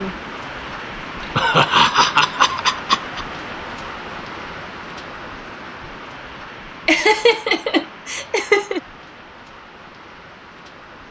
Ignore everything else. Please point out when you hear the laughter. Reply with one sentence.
The laughter can be heard from 1.4 to 3.2 s and from 6.8 to 8.8 s.